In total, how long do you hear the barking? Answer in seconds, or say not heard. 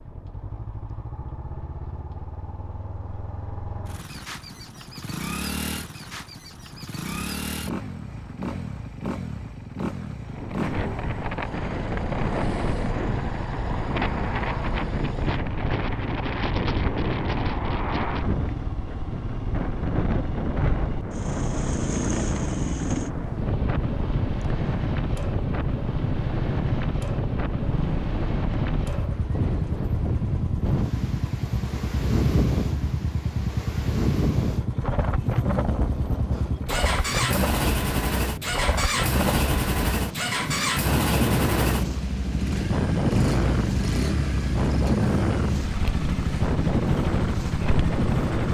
not heard.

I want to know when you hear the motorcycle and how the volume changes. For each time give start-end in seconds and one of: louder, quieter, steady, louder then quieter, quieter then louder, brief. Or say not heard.
0.0-48.5 louder.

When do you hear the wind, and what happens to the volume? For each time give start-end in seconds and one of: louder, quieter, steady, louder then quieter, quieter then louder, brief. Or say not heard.
0.0-48.5 louder.